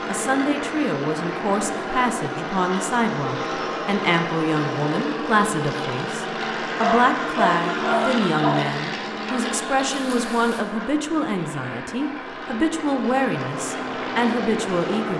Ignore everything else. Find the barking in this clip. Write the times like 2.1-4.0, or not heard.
6.8-8.7.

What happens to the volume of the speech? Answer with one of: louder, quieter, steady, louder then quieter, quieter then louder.
steady.